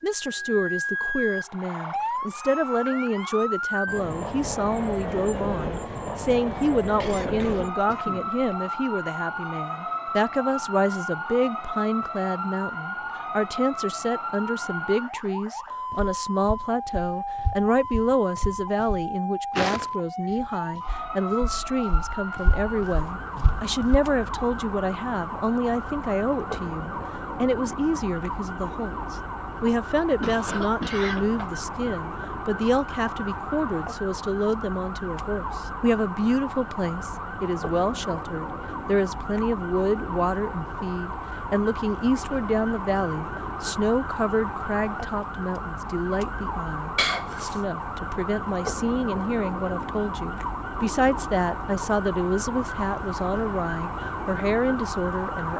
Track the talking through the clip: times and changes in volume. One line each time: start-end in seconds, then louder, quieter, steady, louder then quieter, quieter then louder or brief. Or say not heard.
0.0-55.5 steady.